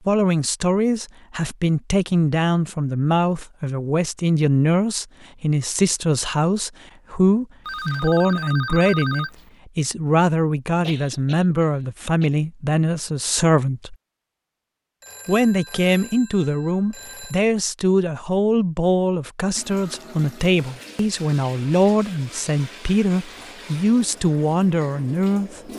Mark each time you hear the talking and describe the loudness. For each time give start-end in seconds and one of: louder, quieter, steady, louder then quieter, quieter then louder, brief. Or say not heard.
0.1-13.9 steady
15.2-25.6 steady.